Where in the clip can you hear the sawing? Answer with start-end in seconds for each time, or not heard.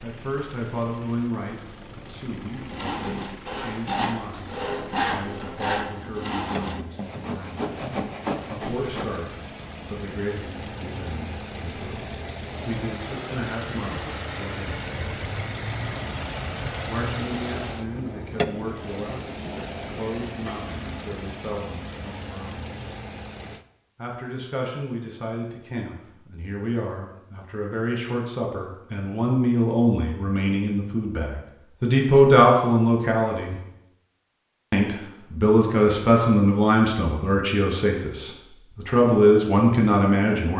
2.5-9.2.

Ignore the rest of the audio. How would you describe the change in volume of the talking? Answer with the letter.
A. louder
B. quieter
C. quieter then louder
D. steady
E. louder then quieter
A.